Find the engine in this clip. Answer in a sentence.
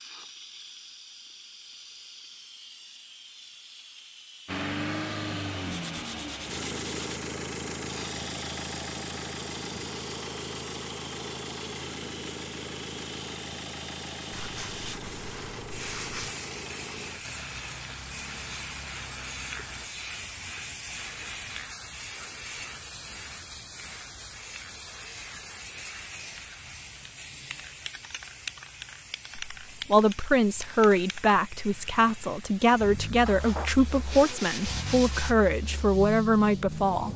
You can hear the engine from 4.5 to 19.9 s and from 32.7 to 37.1 s.